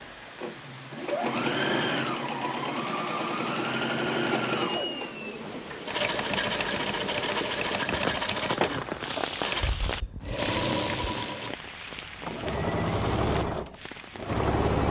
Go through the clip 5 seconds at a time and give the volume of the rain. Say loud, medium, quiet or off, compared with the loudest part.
medium, loud, medium.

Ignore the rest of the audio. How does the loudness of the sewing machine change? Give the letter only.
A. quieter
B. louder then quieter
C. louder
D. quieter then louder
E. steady
E.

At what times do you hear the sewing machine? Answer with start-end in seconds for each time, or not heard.
0.0-14.8.